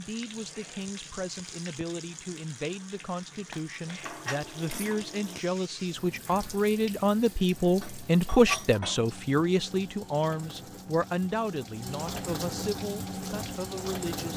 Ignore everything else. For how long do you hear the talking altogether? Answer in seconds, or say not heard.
14 s.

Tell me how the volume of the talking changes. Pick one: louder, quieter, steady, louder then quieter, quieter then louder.
louder then quieter.